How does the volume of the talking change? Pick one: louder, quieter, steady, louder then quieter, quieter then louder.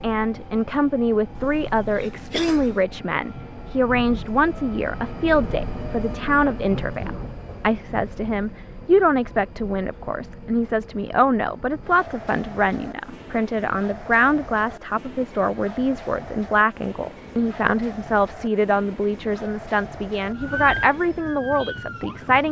steady.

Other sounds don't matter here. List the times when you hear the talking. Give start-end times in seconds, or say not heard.
0.0-22.4.